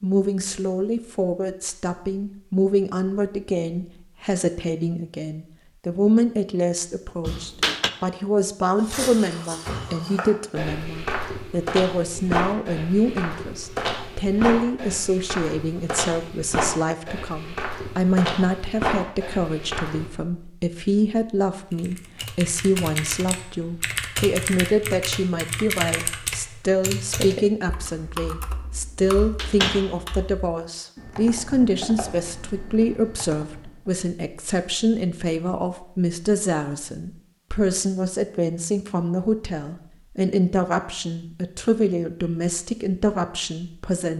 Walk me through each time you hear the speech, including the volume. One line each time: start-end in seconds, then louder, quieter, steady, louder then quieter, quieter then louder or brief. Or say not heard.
0.0-44.1 steady.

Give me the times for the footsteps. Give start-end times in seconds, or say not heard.
8.8-20.1.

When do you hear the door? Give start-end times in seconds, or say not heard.
7.2-7.9, 29.0-29.9.